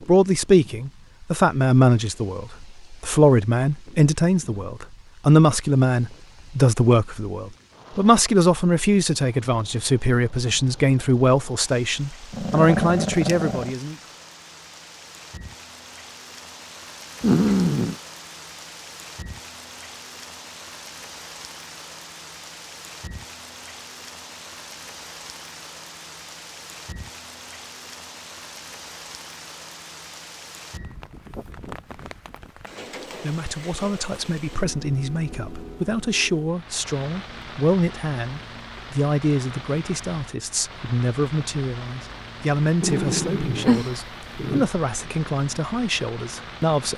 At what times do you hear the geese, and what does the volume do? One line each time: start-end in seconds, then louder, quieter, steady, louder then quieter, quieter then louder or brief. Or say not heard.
not heard.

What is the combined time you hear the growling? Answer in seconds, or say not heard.
4 s.